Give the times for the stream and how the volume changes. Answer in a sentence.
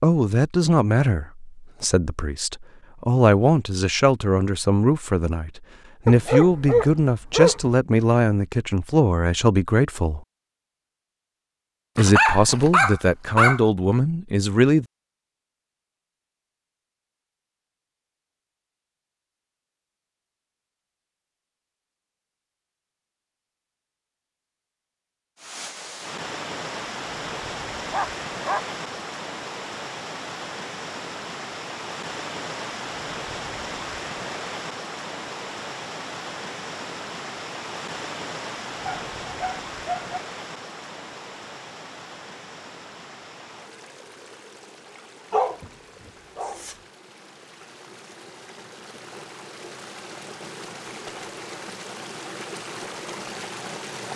The stream can be heard from 25.4 to 54.1 s, getting quieter then louder.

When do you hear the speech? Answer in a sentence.
The speech can be heard from 0.0 to 10.2 s and from 11.9 to 14.8 s.